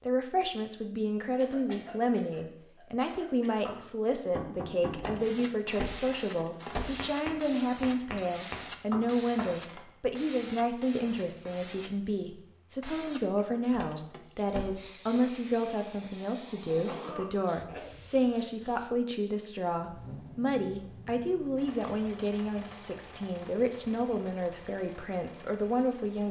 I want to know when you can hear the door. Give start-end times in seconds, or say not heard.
4.9-6.9, 13.7-15.2.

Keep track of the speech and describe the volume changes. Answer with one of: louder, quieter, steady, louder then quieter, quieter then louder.
steady.